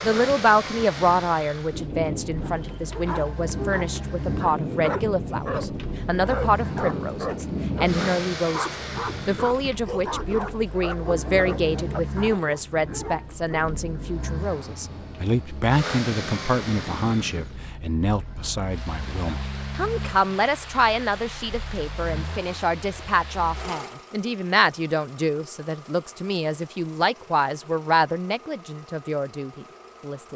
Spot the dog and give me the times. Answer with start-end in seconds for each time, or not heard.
2.4-13.7.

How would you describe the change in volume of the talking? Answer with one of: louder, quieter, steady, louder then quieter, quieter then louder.
steady.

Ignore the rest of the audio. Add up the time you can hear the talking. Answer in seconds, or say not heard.
30 s.